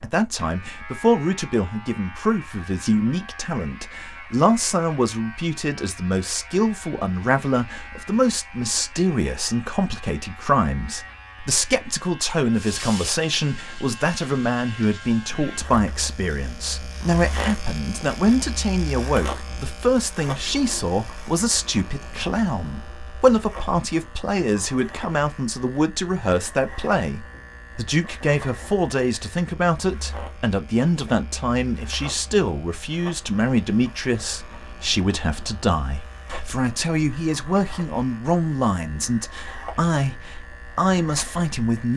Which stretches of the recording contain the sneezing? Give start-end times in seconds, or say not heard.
not heard.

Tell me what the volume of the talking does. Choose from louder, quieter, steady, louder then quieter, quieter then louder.
steady.